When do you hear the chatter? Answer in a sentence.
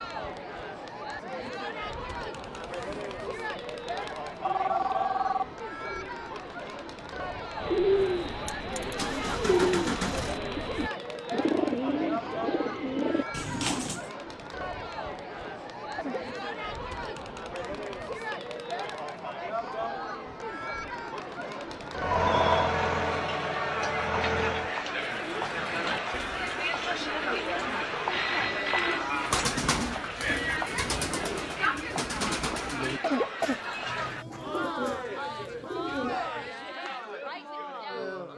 The chatter can be heard from 0.0 to 38.3 s.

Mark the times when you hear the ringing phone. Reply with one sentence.
You can hear the ringing phone from 4.4 to 5.5 s, from 22.1 to 22.8 s and from 28.1 to 29.1 s.